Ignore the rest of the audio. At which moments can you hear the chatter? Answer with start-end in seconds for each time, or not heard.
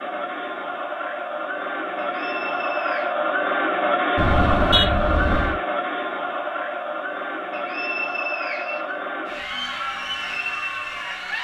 0.0-11.4.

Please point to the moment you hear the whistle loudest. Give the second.
8 s.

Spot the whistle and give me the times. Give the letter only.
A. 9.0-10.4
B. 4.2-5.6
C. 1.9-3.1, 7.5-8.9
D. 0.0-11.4
C.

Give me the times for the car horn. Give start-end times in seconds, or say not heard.
4.2-5.6.